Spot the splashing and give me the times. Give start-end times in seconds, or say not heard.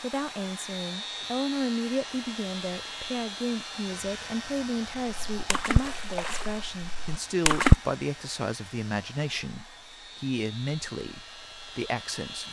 5.3-7.8.